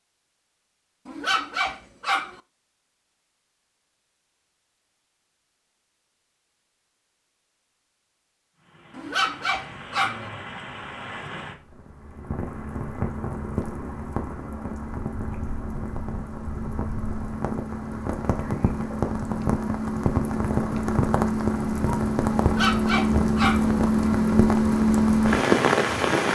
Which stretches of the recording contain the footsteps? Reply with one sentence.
You can't hear the footsteps here.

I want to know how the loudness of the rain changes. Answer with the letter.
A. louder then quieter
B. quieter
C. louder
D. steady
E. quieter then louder
C.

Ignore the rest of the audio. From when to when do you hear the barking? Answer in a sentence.
You can hear the barking from 1.1 to 2.4 s, from 8.9 to 10.3 s and from 22.4 to 23.7 s.